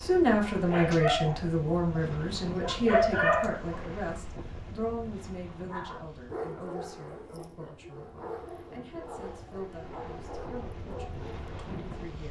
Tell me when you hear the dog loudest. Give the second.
3 s.